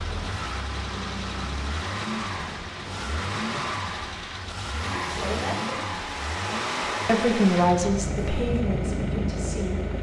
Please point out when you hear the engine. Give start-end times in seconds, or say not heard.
0.0-9.9.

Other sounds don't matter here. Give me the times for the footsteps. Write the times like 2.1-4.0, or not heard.
not heard.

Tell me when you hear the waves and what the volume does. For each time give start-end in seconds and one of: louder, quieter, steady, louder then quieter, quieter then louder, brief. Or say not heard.
0.0-9.9 louder.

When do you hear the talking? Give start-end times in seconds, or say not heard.
4.8-6.0, 7.0-9.9.